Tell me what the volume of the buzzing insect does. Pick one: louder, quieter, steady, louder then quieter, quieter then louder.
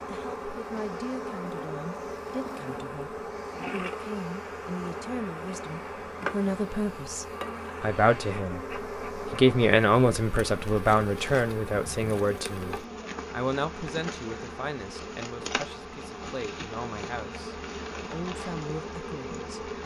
steady.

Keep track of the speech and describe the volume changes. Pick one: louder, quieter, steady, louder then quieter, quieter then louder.
louder then quieter.